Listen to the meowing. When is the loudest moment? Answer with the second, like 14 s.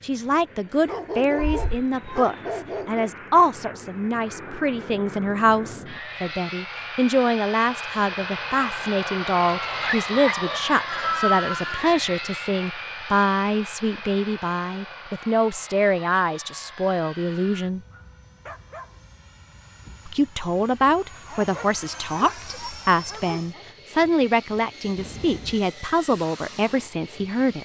11 s.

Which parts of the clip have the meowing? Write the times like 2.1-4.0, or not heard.
1.4-2.2, 10.8-11.9, 24.9-25.6.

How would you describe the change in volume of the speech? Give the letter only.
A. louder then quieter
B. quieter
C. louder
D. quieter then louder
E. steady
E.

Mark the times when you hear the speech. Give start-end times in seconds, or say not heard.
0.0-17.8, 20.1-27.6.